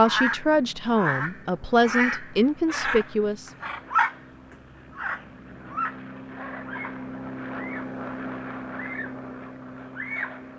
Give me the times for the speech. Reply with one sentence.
The speech can be heard from 0.0 to 3.5 s.